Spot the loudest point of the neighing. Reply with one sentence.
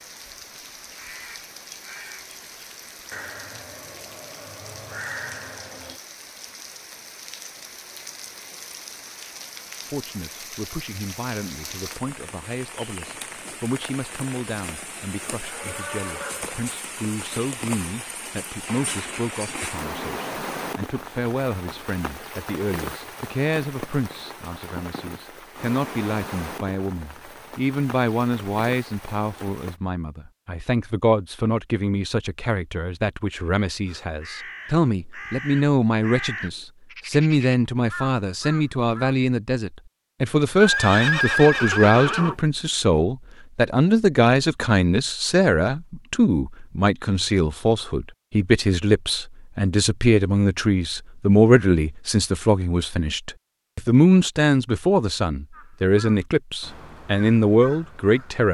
The volume of the neighing peaks at 41 seconds.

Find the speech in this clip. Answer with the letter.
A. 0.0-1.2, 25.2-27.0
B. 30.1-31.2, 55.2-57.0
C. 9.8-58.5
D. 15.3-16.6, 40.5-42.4
C.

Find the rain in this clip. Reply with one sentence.
The rain can be heard from 0.0 to 29.8 s.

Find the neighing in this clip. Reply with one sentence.
The neighing can be heard from 15.3 to 16.6 s and from 40.5 to 42.4 s.